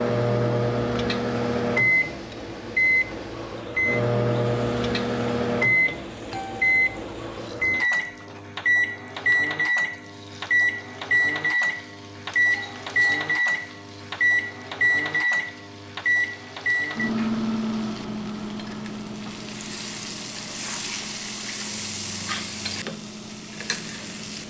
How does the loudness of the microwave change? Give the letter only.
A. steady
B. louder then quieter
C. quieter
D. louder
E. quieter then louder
C.